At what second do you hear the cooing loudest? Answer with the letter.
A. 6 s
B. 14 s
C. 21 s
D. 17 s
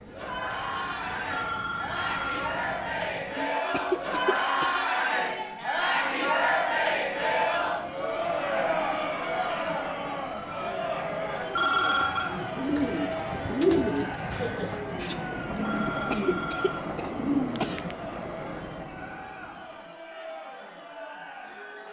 B.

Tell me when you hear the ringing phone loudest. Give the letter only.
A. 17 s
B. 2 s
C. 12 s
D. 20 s
C.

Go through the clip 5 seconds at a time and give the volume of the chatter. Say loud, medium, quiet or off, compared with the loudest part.
loud, loud, medium, quiet, quiet.